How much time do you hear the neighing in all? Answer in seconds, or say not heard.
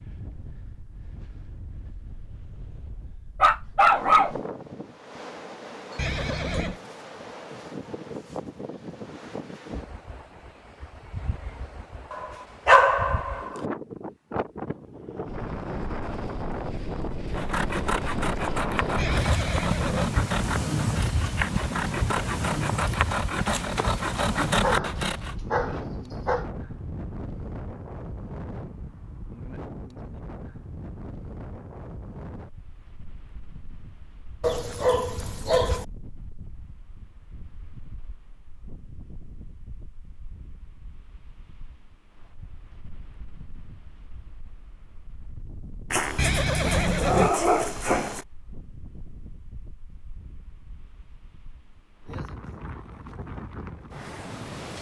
3 s.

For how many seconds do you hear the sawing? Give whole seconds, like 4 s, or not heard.
8 s.